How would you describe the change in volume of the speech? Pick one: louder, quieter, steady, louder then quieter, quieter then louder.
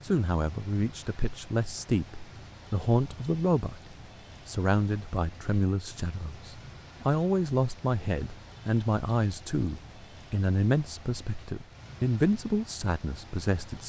steady.